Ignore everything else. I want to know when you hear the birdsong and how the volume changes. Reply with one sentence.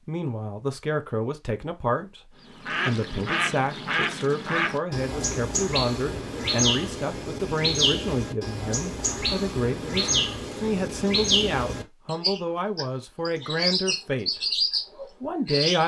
You can hear the birdsong from 2.5 to 15.8 s, at a steady volume.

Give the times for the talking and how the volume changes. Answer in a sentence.
The talking can be heard from 0.1 to 15.8 s, at a steady volume.